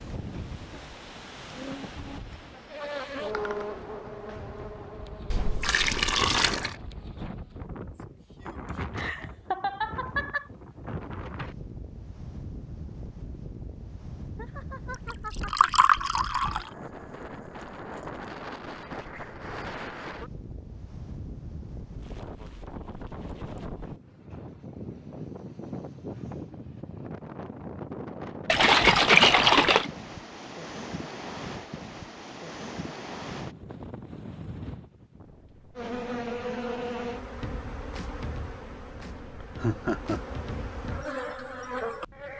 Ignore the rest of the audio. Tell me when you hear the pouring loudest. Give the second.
29 s.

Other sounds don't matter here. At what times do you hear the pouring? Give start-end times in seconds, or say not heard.
5.3-6.8, 15.1-16.7, 28.4-29.9.